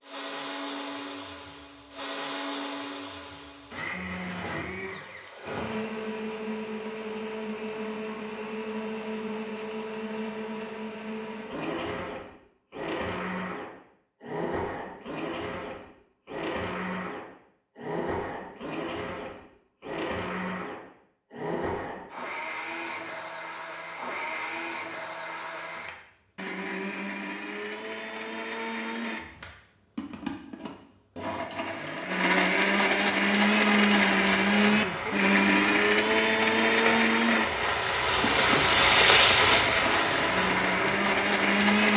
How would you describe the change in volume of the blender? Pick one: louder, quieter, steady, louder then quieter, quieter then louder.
louder.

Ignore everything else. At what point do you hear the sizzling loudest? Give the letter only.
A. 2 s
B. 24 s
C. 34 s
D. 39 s
D.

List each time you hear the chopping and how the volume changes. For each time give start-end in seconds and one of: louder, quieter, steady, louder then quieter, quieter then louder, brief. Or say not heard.
not heard.